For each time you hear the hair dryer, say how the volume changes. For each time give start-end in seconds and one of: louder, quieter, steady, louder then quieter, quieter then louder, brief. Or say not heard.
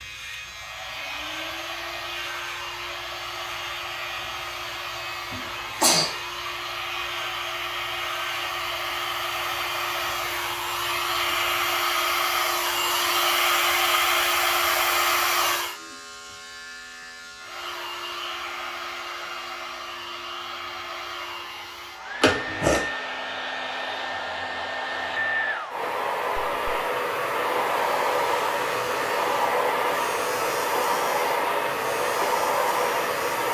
0.2-15.8 louder
17.4-33.5 louder.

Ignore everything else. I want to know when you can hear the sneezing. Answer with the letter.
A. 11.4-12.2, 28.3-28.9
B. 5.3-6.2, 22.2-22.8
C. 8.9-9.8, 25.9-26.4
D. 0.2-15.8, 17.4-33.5
B.